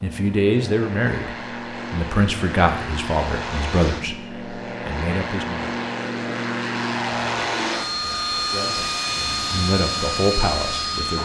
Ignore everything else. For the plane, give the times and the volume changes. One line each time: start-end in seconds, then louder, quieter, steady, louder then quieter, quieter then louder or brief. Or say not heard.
0.0-11.2 louder.